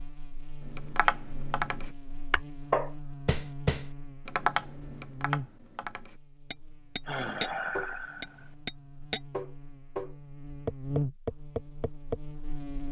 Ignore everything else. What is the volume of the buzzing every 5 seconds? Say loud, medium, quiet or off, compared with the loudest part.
medium, medium, loud.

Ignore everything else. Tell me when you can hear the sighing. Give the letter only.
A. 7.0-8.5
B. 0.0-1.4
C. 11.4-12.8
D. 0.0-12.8
A.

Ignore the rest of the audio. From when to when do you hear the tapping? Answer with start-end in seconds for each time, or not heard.
0.7-12.2.